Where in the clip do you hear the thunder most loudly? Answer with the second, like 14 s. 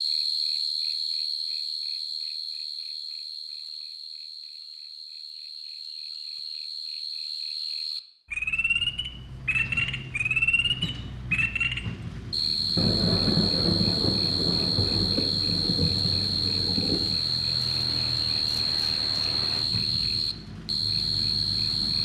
13 s.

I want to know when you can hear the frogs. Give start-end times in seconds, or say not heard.
0.0-22.0.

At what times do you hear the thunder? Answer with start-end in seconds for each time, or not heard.
12.8-17.2.